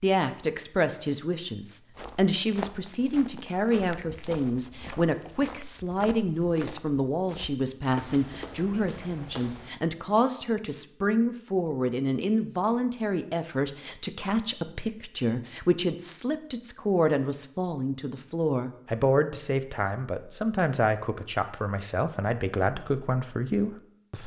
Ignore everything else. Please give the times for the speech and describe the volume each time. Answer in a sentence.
You can hear the speech from 0.0 to 24.2 s, at a steady volume.